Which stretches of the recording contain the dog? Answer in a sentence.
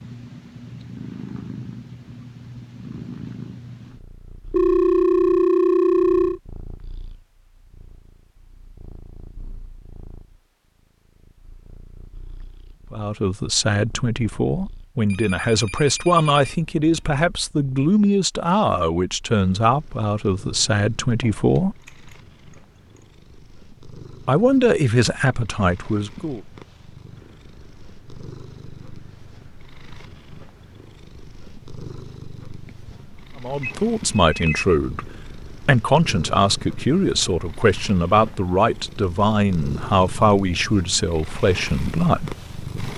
You can't hear the dog here.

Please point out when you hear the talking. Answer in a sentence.
The talking can be heard from 12.9 to 21.8 s, from 24.2 to 26.4 s and from 33.4 to 42.4 s.